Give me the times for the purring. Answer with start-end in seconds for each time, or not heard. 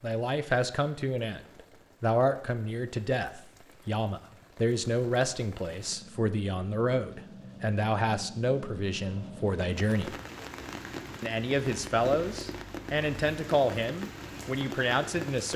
not heard.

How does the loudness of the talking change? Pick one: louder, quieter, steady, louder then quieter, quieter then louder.
steady.